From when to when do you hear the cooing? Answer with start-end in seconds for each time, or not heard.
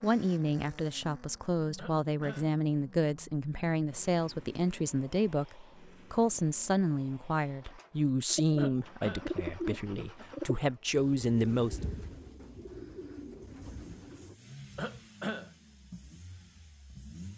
8.3-14.3.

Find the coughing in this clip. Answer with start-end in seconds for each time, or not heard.
1.8-2.5, 8.6-9.3, 14.8-15.5.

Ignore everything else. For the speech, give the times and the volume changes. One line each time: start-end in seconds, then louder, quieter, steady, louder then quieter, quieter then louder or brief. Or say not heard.
0.0-11.8 steady.